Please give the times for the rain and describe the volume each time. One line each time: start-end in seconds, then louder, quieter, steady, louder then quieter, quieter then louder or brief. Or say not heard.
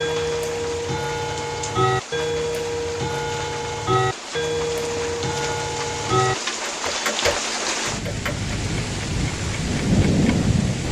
0.0-10.8 louder.